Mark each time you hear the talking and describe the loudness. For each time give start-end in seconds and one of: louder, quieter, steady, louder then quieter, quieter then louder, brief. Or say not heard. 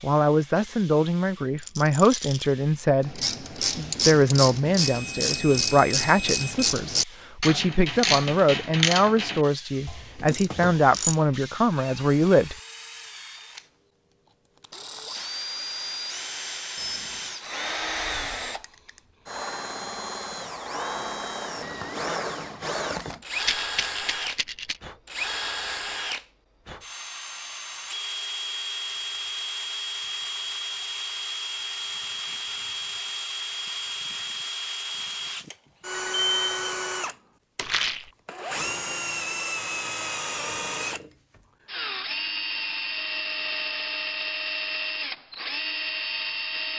0.0-12.6 steady.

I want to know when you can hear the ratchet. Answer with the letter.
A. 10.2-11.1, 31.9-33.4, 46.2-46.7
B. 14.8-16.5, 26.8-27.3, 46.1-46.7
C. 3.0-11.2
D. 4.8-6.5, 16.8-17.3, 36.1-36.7
C.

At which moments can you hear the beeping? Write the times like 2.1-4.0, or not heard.
4.8-6.5, 16.8-17.3, 36.1-36.7.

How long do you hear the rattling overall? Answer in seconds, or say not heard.
3 s.